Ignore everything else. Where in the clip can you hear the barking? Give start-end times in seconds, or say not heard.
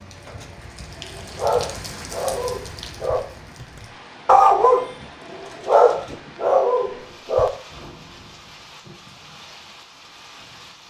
1.0-7.5.